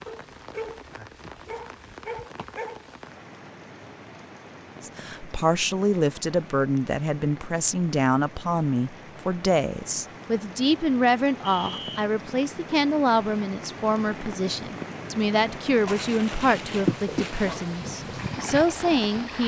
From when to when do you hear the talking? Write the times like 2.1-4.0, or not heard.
4.8-19.4.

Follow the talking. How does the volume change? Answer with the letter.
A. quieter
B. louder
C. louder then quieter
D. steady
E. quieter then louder
D.